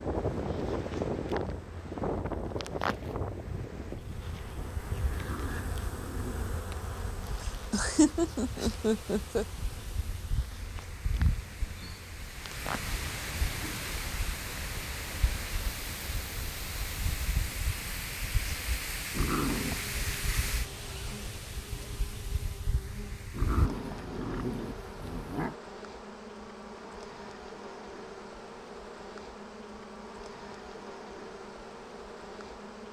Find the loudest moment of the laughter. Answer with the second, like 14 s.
8 s.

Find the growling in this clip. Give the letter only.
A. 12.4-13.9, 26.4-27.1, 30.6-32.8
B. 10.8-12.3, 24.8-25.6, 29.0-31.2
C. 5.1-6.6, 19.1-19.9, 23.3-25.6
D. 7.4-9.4
C.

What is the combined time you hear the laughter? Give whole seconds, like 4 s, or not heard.
2 s.